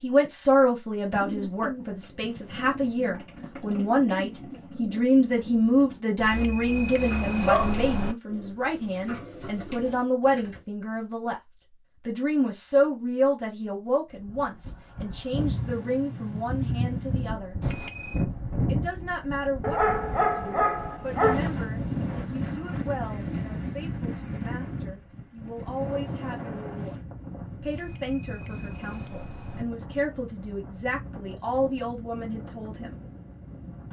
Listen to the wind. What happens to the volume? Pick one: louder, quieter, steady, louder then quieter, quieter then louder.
quieter.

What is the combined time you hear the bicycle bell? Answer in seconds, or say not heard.
5 s.